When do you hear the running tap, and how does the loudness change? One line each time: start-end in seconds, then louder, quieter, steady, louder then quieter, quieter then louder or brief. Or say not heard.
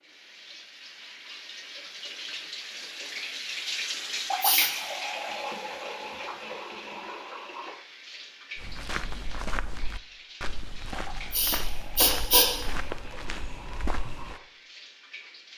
0.0-15.5 louder then quieter.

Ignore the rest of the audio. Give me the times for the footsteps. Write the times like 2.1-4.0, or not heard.
8.6-14.4.